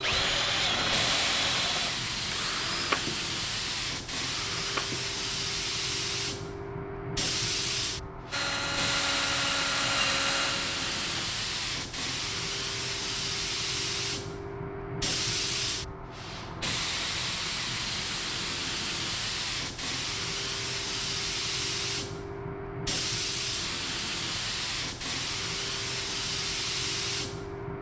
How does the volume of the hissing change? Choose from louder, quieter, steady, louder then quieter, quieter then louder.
steady.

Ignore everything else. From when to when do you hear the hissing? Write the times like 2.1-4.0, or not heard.
0.0-27.7.